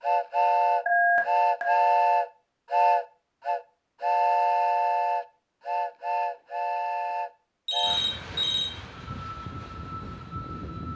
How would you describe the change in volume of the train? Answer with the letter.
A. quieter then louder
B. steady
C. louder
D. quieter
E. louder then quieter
D.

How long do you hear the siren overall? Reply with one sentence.
The siren can't be heard in this clip.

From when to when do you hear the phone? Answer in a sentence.
The phone can be heard from 0.8 to 1.8 s and from 7.7 to 8.7 s.